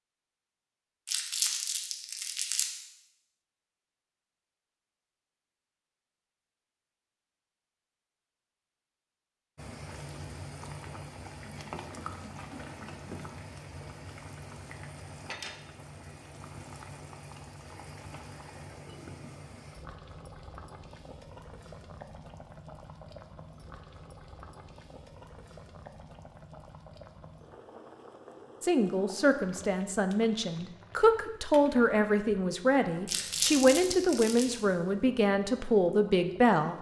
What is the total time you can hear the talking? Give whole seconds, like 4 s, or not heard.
8 s.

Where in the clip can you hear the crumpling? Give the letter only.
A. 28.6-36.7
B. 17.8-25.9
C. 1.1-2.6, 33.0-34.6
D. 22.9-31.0
C.